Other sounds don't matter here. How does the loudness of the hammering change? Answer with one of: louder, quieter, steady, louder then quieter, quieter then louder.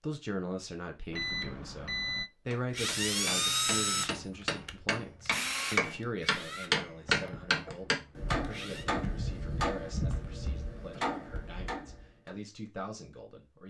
louder then quieter.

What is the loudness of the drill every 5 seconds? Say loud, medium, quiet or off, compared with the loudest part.
loud, medium, off.